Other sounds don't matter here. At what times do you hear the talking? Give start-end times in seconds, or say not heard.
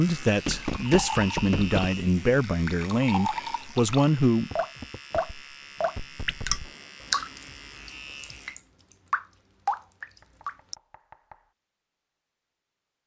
0.0-4.5.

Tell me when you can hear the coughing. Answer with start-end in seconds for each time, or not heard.
not heard.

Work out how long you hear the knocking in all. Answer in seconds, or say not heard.
5 s.